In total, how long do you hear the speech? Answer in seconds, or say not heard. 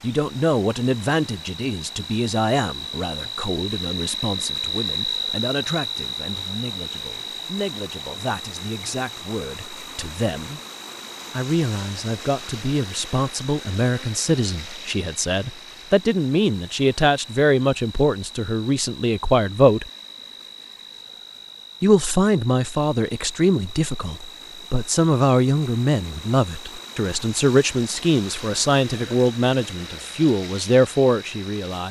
29 s.